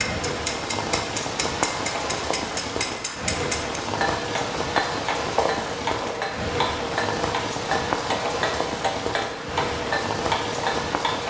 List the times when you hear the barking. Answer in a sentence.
The barking can't be heard in this clip.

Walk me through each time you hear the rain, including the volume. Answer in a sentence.
The rain can be heard from 0.0 to 11.2 s, at a steady volume.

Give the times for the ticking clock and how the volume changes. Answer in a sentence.
You can hear the ticking clock from 0.0 to 11.2 s, at a steady volume.